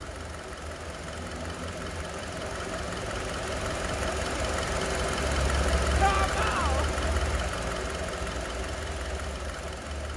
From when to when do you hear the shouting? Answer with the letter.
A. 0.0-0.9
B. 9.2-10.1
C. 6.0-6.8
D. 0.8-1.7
C.